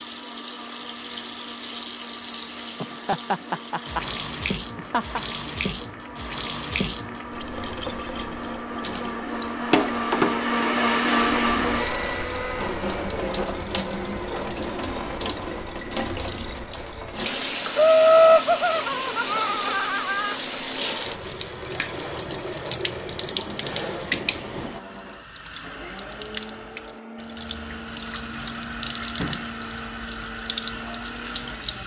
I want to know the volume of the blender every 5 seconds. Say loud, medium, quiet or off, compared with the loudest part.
quiet, medium, loud, quiet, quiet, quiet, quiet.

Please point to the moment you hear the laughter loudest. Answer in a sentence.
The loudest moment of the laughter is at 18 seconds.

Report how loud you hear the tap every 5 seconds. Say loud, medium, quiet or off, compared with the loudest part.
medium, loud, loud, loud, loud, loud, loud.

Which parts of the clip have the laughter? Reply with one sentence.
The laughter can be heard from 2.8 to 4.0 s, from 4.8 to 5.2 s and from 17.8 to 20.4 s.